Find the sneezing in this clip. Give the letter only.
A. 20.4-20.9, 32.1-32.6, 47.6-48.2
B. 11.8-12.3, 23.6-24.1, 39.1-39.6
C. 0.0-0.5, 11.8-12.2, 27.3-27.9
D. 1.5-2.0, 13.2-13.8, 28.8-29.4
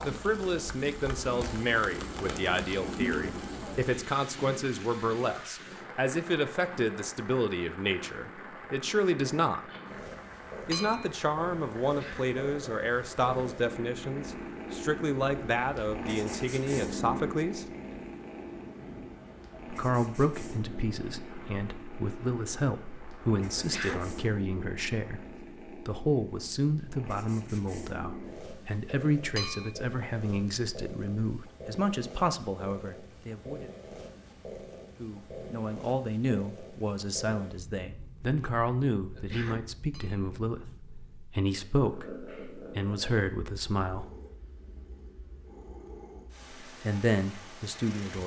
B.